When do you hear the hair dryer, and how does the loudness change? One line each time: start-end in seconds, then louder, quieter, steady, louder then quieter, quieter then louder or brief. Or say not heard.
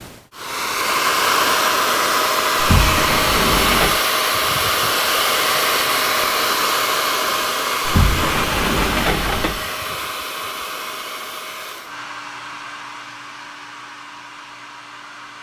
0.0-15.3 quieter.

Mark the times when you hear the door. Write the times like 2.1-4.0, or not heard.
2.5-4.0, 7.8-9.7.